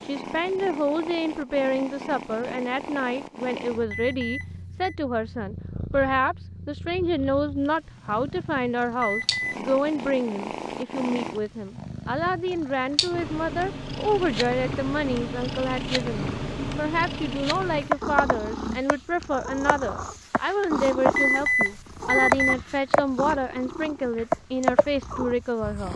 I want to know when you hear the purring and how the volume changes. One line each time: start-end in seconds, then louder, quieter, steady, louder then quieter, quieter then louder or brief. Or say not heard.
0.0-25.9 louder.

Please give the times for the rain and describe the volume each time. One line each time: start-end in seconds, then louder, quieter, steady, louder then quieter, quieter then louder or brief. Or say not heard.
not heard.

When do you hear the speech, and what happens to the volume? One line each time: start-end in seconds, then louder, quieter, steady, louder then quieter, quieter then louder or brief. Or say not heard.
0.0-25.9 steady.